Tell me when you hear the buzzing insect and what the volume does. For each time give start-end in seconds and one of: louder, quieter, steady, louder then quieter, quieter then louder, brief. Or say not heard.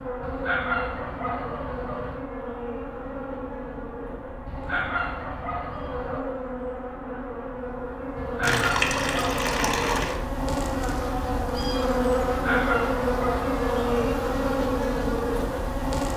0.0-16.1 louder.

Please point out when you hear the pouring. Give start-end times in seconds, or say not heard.
8.4-10.2.